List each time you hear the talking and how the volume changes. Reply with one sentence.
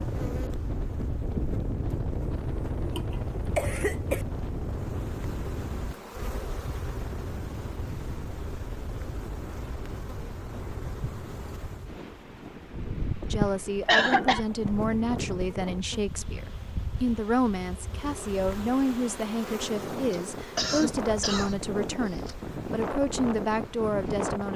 The talking can be heard from 13.3 to 24.5 s, at a steady volume.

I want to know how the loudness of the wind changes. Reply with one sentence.
The loudness of the wind goes down, then up.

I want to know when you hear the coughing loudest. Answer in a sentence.
The loudest moment of the coughing is at 14 seconds.